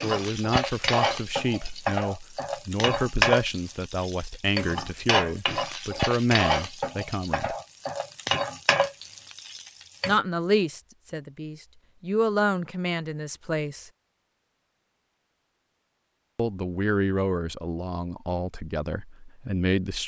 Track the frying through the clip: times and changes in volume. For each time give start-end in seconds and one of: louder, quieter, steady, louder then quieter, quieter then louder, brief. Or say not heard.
0.0-10.2 steady.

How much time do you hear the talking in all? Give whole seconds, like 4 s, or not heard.
15 s.